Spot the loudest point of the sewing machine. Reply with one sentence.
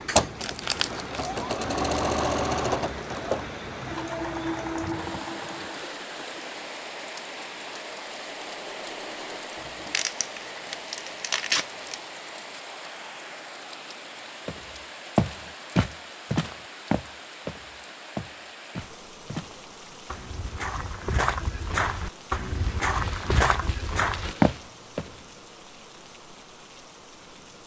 The volume of the sewing machine peaks at 2 seconds.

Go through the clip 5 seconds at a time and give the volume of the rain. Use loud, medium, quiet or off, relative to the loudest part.
loud, loud, loud, medium, medium, medium.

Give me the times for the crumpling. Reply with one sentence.
You can hear the crumpling from 0.4 to 1.2 s, from 9.9 to 12.0 s and from 22.6 to 25.1 s.